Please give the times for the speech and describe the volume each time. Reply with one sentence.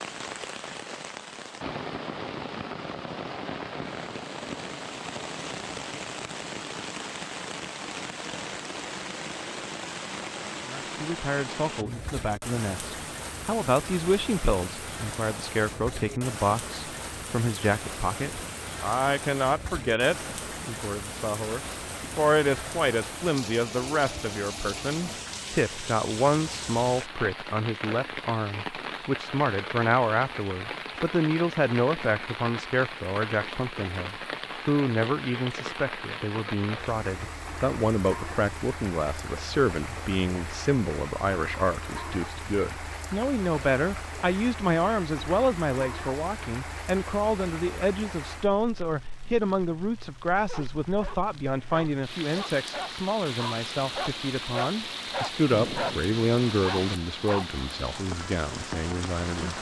The speech can be heard from 10.7 to 59.5 s, at a steady volume.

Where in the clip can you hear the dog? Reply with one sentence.
The dog can be heard from 50.5 to 57.6 s.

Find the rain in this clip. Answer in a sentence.
The rain can be heard from 0.0 to 59.5 s.